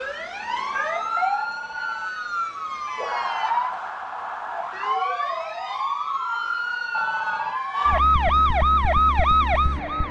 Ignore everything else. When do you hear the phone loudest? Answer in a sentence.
The loudest moment of the phone is at 7 seconds.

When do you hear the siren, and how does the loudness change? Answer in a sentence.
You can hear the siren from 0.0 to 10.0 s, getting louder.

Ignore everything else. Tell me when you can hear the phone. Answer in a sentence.
You can hear the phone from 0.5 to 2.1 s and from 6.9 to 7.6 s.